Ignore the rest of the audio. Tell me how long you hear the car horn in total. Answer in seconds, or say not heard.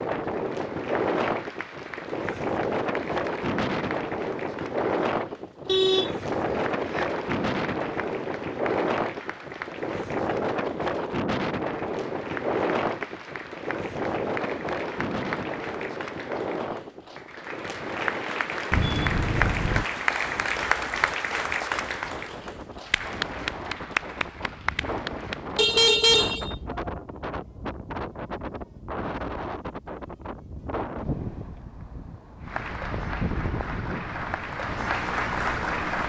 4 s.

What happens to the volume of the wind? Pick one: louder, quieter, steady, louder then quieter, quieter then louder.
quieter.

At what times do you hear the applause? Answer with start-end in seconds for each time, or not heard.
0.0-25.6, 32.5-36.0.